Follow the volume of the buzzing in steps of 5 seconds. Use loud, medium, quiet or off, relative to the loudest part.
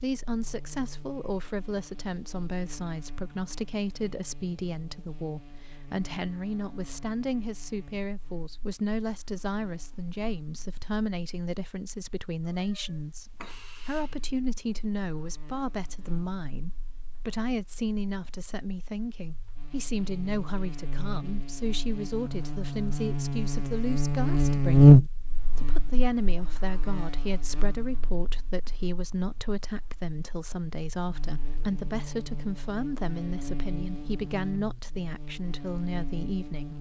quiet, quiet, quiet, quiet, loud, quiet, quiet, quiet.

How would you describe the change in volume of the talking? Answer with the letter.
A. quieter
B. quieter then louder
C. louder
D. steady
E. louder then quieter
D.